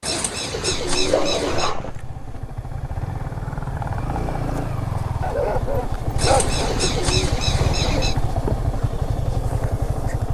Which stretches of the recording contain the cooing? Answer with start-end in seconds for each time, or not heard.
0.0-1.8, 6.2-8.2.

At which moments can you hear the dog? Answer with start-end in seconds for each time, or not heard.
0.9-2.4, 5.2-6.8.